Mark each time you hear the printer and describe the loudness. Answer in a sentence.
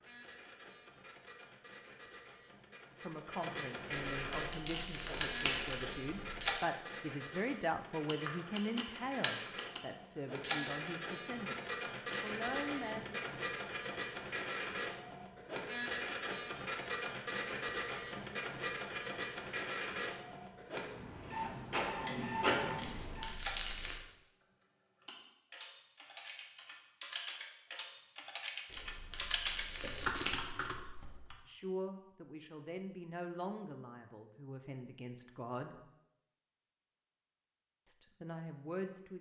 The printer can be heard from 0.0 to 23.3 s, getting louder.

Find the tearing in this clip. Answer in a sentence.
You can hear the tearing from 3.9 to 6.5 s, from 22.8 to 24.0 s and from 28.7 to 30.4 s.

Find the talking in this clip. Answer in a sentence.
The talking can be heard from 3.0 to 13.1 s, from 31.4 to 35.8 s and from 37.9 to 39.1 s.